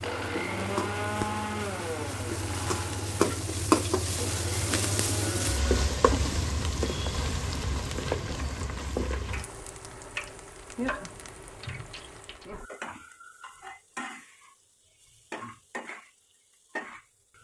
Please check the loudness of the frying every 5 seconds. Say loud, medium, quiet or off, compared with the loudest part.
loud, loud, medium, quiet.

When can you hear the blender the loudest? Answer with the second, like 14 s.
1 s.